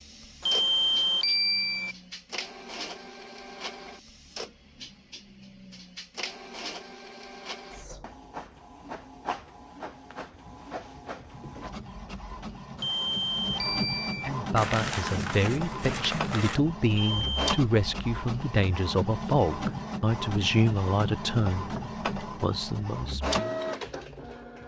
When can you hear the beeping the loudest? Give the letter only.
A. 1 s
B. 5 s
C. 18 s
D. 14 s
A.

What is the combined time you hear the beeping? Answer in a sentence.
The beeping can be heard for 4 seconds in total.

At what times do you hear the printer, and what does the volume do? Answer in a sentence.
You can hear the printer from 0.0 to 24.6 s, getting louder.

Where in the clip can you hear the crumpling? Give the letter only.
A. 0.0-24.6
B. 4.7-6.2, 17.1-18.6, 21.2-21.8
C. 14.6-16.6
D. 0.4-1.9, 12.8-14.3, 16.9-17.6
C.